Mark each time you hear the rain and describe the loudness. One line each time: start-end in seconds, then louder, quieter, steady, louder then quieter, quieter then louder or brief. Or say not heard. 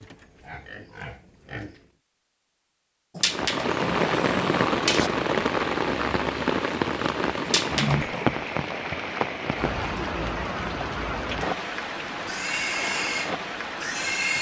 3.2-14.3 quieter.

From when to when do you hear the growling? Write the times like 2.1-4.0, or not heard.
3.1-5.1, 7.5-8.3.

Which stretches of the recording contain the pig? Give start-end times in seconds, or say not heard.
0.0-1.9, 12.2-14.3.